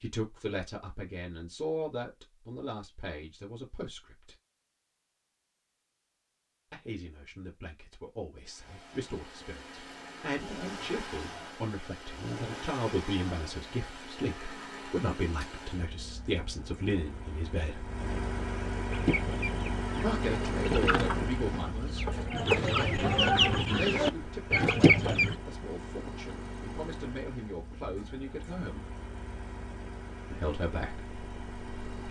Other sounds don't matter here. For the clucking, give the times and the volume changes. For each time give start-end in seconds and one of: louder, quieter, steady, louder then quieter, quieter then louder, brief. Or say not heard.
18.9-25.4 louder.